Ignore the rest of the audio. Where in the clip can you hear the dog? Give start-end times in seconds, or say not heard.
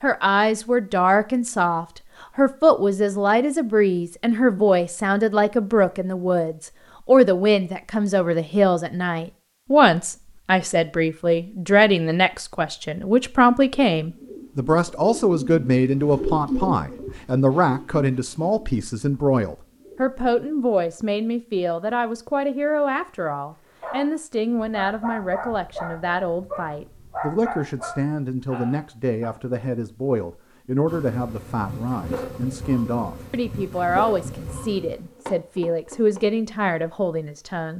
23.8-29.3.